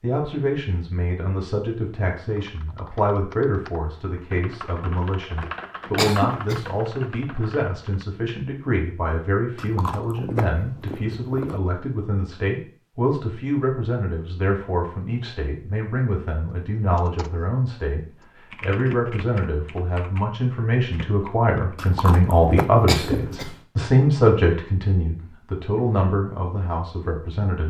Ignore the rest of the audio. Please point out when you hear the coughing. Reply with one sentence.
You can hear the coughing from 6.0 to 6.6 s and from 22.9 to 23.5 s.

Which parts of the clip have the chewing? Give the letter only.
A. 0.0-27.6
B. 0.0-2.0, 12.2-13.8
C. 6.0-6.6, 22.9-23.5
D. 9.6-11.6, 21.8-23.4
D.